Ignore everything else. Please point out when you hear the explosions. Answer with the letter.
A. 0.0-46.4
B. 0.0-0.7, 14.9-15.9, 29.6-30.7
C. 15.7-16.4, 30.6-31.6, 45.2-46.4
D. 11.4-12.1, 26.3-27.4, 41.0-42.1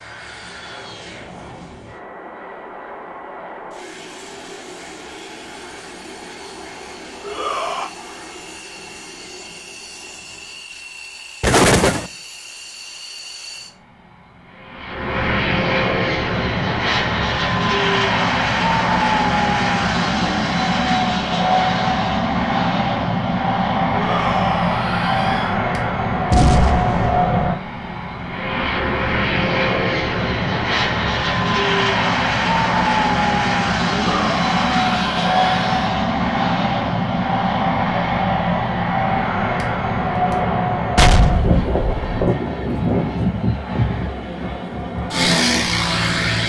D.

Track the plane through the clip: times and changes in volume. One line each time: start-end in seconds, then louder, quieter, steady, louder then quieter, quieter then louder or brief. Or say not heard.
0.0-46.4 louder.